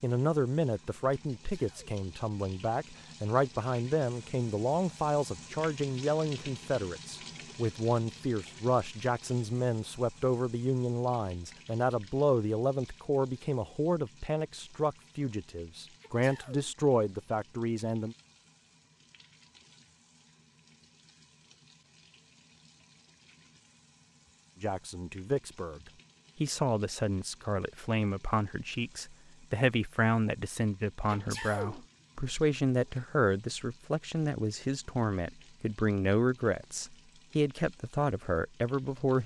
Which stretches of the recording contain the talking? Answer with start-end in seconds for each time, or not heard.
0.0-18.1, 24.6-25.8, 26.4-39.2.